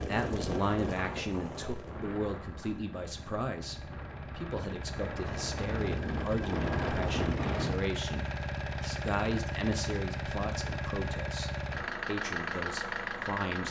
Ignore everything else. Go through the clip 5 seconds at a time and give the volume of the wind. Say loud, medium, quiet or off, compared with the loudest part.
medium, loud, off.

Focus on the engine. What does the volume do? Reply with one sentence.
The volume of the engine goes up.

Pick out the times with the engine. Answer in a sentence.
You can hear the engine from 0.2 to 13.6 s.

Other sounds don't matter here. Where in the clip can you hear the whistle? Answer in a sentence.
The whistle can't be heard in this clip.